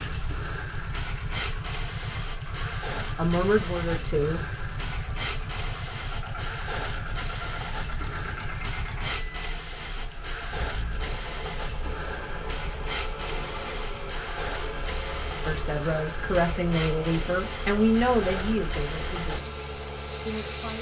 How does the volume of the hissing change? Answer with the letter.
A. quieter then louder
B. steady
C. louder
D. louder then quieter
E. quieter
B.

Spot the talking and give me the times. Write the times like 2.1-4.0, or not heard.
3.0-4.4, 15.4-19.6, 20.2-20.7.